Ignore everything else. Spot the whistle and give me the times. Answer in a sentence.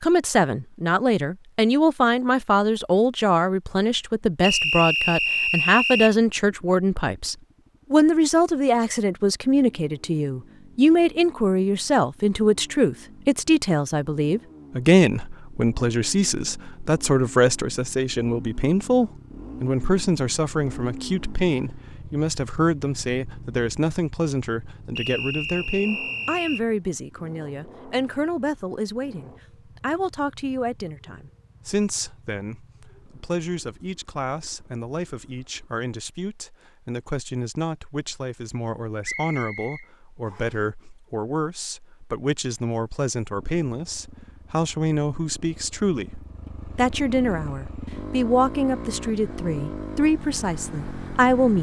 You can hear the whistle from 4.4 to 6.2 s, from 24.9 to 26.6 s and from 39.0 to 40.5 s.